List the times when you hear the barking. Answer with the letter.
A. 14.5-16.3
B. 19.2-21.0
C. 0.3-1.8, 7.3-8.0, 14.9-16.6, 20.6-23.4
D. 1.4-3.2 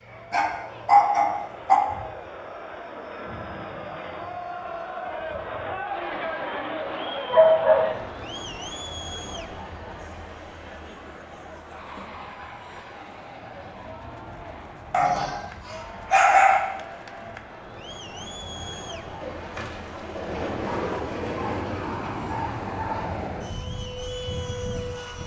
C.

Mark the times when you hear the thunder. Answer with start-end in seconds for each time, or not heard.
not heard.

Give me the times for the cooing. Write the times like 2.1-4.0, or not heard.
19.2-21.0.